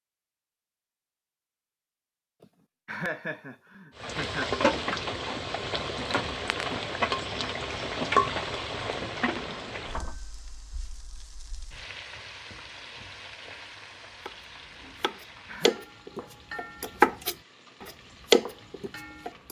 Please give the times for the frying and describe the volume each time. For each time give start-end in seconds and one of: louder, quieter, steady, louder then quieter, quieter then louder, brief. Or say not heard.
4.0-19.4 quieter.